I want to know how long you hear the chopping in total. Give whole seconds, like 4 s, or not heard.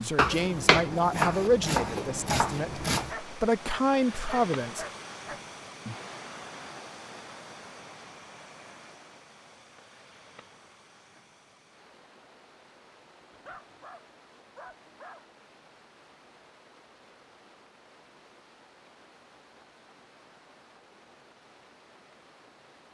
3 s.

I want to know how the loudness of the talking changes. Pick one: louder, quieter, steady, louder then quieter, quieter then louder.
quieter then louder.